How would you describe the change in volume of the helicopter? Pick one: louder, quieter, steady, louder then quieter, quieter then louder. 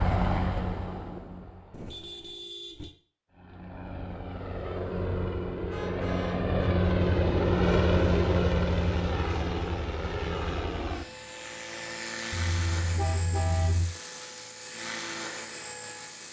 louder then quieter.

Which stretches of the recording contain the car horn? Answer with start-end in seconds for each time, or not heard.
1.7-3.0, 5.7-7.3, 12.3-13.9.